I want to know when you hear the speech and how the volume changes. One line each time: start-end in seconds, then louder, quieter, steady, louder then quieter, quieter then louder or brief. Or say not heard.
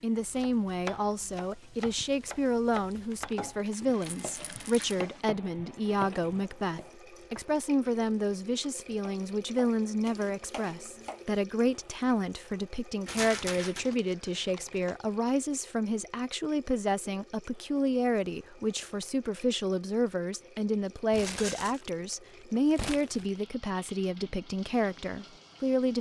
0.0-25.9 steady.